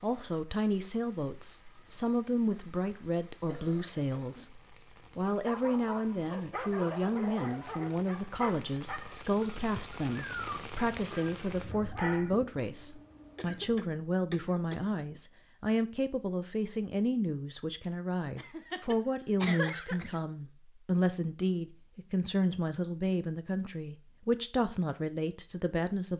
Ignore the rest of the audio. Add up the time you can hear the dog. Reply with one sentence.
The dog can be heard for 7 seconds in total.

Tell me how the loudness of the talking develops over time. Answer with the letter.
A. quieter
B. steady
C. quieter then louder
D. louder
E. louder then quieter
B.